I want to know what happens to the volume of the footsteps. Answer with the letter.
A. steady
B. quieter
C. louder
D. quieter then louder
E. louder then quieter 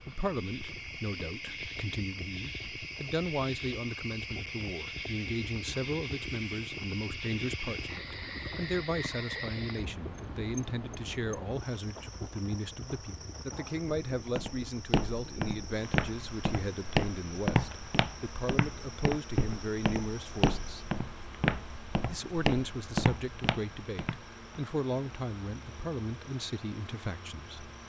A.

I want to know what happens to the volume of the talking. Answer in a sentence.
The volume of the talking stays about the same.